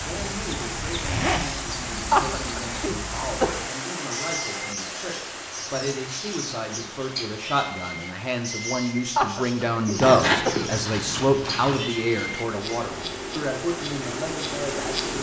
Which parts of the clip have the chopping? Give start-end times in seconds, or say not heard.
not heard.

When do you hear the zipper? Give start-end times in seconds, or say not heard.
0.9-1.5, 9.9-11.8.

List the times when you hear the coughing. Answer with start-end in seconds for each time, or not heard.
2.1-3.5, 9.2-10.8.